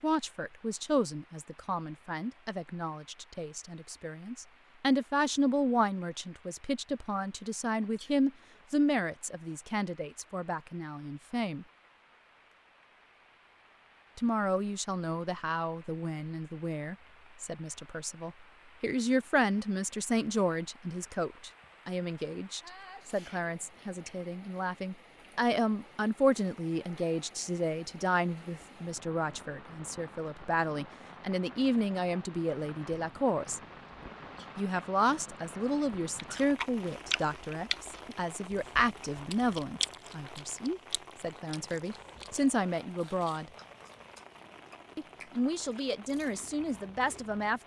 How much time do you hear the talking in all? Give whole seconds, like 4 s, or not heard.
43 s.